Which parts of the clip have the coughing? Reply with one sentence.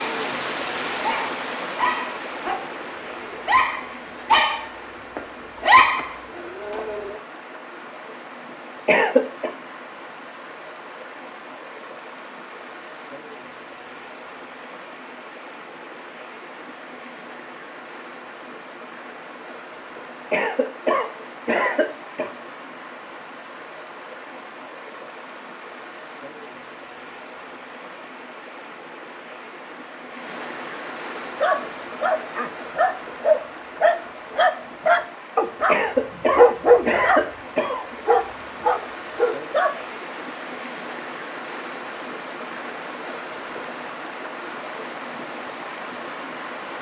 You can hear the coughing from 8.8 to 9.5 s, from 20.3 to 22.3 s and from 35.6 to 38.0 s.